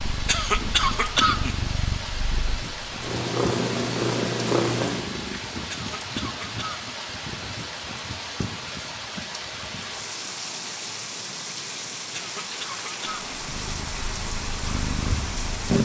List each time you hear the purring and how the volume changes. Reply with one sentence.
The purring can be heard from 0.0 to 5.5 s, getting louder; and briefly from 13.3 to 15.8 s.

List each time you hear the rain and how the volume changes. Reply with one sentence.
The rain can be heard from 0.0 to 15.8 s, at a steady volume.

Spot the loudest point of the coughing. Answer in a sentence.
The loudest moment of the coughing is at 1 second.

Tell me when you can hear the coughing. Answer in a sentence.
The coughing can be heard from 0.2 to 1.6 s, from 5.7 to 7.0 s and from 12.1 to 13.4 s.